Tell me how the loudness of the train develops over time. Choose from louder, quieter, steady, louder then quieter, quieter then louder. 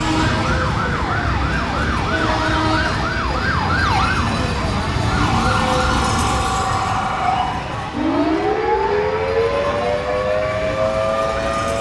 quieter.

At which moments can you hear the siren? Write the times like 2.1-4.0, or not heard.
0.2-11.7.